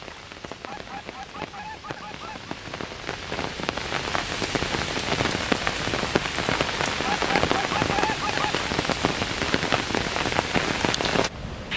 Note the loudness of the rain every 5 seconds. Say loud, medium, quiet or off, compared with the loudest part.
medium, loud, loud.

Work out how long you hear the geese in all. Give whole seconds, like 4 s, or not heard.
3 s.